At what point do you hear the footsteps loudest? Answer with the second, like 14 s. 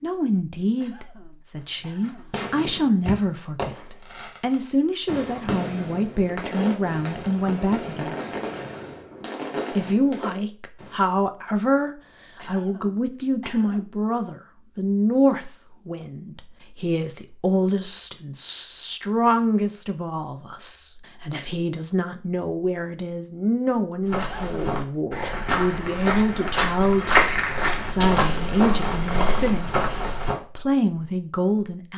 27 s.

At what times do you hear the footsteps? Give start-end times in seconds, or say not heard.
24.1-30.4.